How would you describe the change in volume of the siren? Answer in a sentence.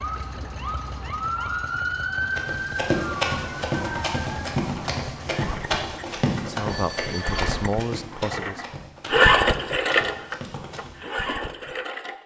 The volume of the siren goes up, then down.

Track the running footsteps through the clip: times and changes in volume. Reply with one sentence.
You can hear the running footsteps from 2.4 to 11.0 s, getting quieter.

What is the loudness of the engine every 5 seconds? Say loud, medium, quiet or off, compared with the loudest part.
quiet, loud, medium.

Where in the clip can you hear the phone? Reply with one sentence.
You can hear the phone from 6.7 to 7.5 s.